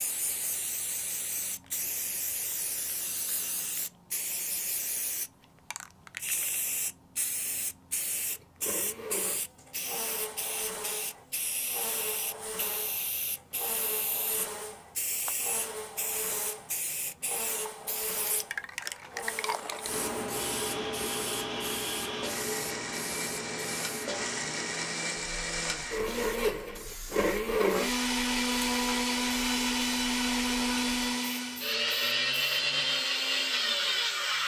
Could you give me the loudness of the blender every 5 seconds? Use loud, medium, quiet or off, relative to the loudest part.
off, quiet, quiet, quiet, medium, loud, loud.